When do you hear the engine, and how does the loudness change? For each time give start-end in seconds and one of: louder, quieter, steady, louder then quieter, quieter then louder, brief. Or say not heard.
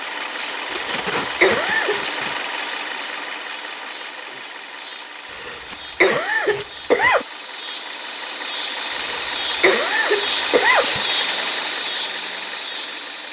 0.0-13.2 quieter then louder.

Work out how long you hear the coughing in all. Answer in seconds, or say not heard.
5 s.